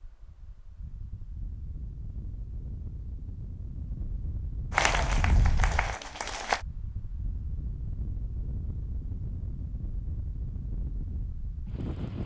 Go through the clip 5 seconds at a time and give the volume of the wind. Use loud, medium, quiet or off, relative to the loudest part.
medium, loud, loud.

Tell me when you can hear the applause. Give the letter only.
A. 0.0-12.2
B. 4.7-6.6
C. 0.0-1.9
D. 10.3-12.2
B.